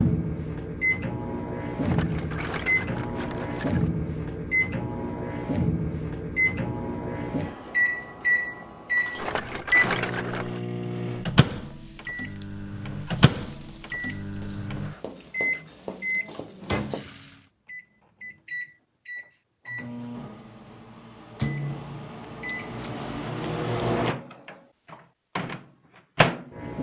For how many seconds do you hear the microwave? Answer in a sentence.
The microwave can be heard for 27 seconds in total.